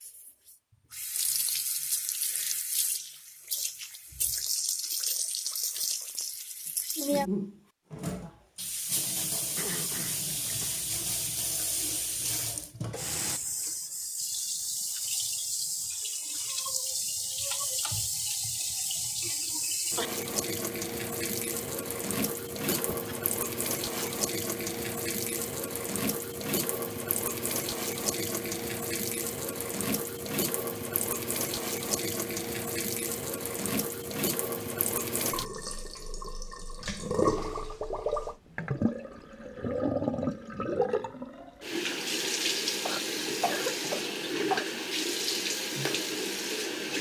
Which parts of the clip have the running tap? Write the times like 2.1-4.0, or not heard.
0.0-46.9.